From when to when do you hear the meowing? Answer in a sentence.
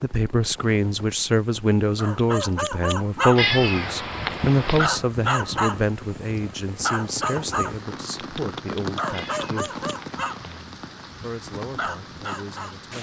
The meowing can be heard from 3.4 to 4.9 s and from 9.1 to 10.7 s.